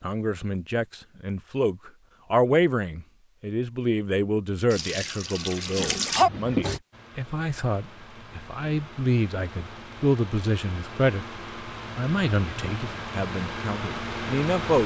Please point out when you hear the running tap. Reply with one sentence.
You can hear the running tap from 4.7 to 6.8 s.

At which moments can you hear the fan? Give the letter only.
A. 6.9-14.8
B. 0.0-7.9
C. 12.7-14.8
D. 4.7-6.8
A.